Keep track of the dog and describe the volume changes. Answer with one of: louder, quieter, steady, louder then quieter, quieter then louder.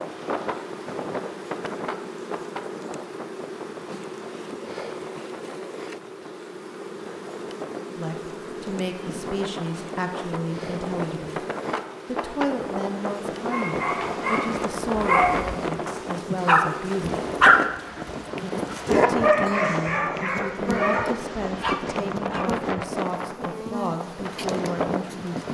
louder then quieter.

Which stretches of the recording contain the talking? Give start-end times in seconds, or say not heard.
8.0-11.4, 12.1-17.2, 19.1-25.4.